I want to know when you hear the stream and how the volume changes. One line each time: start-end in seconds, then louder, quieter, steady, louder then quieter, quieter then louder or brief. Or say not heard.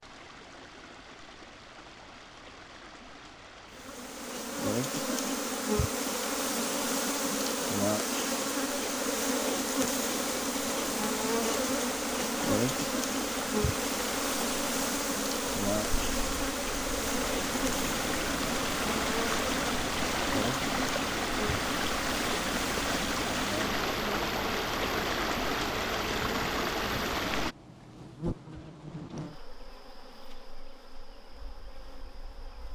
0.0-27.6 louder.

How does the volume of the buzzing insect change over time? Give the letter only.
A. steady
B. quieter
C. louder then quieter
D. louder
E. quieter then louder
B.